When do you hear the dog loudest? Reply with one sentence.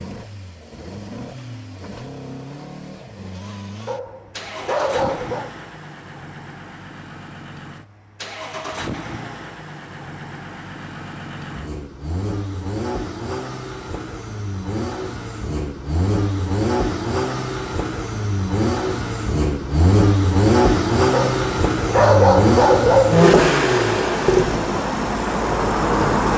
The loudest moment of the dog is at 22 seconds.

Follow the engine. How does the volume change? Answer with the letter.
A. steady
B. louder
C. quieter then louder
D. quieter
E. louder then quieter
B.